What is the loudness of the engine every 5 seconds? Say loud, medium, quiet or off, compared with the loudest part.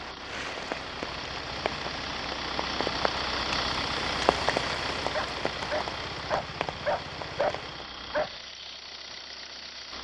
loud, medium.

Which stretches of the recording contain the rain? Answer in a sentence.
The rain can be heard from 0.0 to 7.8 s.